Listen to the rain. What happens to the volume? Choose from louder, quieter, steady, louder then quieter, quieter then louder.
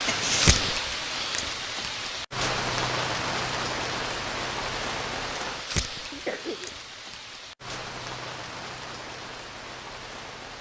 quieter.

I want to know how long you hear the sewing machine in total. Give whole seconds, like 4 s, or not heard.
not heard.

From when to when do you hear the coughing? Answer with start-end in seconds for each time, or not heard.
0.1-0.8, 6.1-6.7.